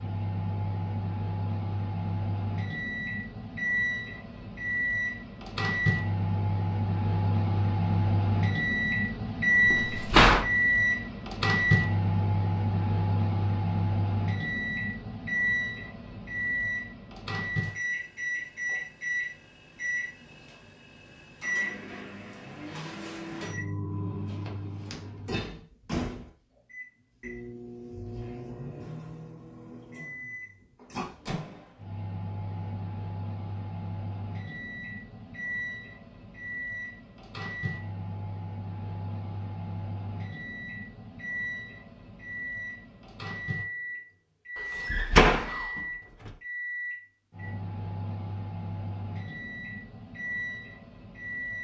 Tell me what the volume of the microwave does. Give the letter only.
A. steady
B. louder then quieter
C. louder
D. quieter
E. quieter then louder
D.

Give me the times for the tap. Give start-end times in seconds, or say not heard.
not heard.